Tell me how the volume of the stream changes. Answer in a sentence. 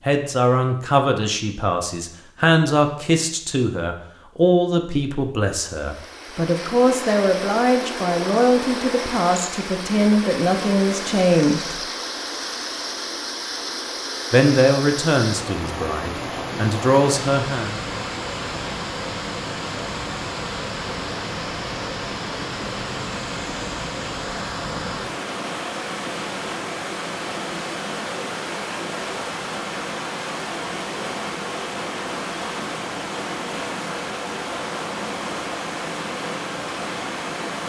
The loudness of the stream stays about the same.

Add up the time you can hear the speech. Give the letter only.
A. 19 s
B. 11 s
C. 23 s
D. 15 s
D.